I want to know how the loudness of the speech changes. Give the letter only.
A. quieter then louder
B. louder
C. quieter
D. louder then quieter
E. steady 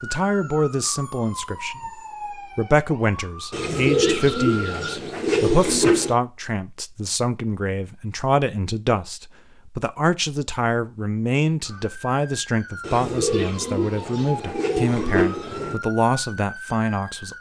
E.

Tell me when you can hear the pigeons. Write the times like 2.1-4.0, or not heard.
3.5-6.2, 12.8-15.8.